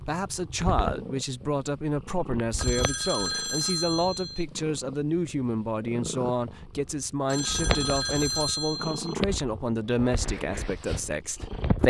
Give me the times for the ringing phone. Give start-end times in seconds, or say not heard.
2.5-4.5, 7.2-9.2.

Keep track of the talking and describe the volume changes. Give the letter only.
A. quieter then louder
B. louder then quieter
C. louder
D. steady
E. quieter
D.